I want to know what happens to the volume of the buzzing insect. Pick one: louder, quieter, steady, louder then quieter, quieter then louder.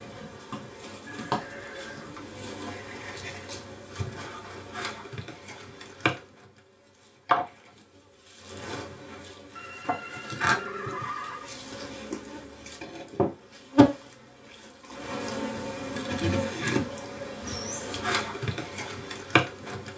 louder.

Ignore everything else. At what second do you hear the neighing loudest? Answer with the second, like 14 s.
11 s.